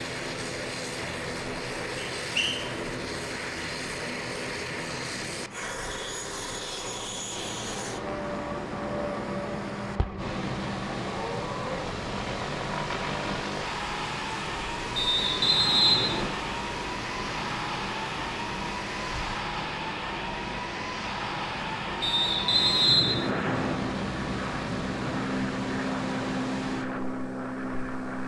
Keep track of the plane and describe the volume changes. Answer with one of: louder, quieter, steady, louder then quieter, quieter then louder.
steady.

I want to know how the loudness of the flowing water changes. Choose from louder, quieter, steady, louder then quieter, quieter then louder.
louder.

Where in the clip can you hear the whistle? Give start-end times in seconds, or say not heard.
1.9-2.6, 14.9-16.4, 22.0-23.9.